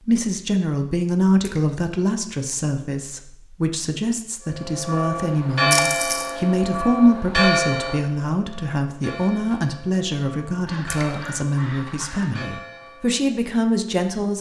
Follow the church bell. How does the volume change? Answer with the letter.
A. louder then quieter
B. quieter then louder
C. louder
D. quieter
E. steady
D.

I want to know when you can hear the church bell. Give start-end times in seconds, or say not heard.
4.5-13.3.